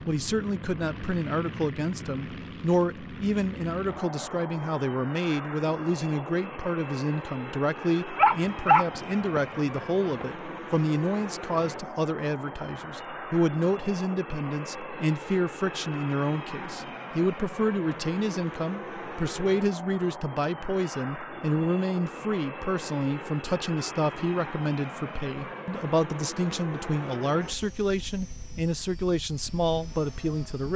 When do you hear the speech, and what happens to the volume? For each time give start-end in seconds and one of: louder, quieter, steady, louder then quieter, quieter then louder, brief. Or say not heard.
0.1-30.7 steady.